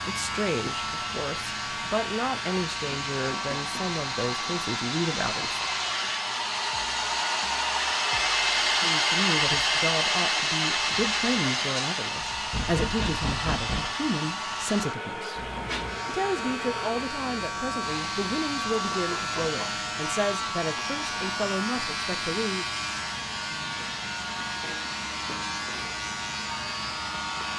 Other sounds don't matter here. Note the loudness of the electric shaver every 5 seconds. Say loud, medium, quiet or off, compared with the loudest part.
loud, medium, medium, loud, loud, loud.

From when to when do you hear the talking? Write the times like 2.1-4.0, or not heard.
0.1-5.7, 8.8-22.7.